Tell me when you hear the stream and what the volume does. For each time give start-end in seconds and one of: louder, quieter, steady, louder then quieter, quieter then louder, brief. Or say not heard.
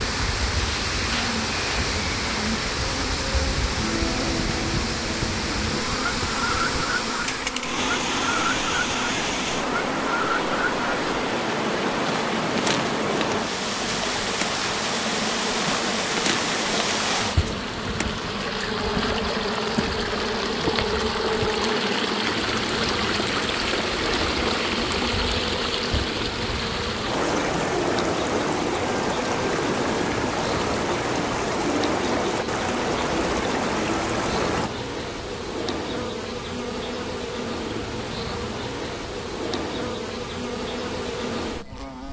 0.0-34.7 steady.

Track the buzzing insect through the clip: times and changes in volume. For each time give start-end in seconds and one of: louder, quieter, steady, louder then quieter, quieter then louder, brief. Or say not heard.
0.0-42.0 steady.